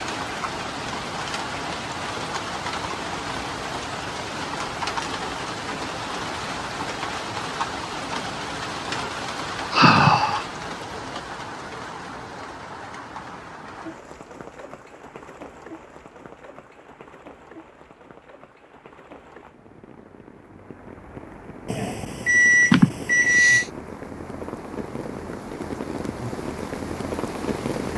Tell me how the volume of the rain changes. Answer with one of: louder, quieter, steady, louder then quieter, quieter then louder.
quieter then louder.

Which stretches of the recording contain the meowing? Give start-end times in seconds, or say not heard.
not heard.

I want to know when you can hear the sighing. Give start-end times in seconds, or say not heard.
9.7-10.4, 22.7-23.6.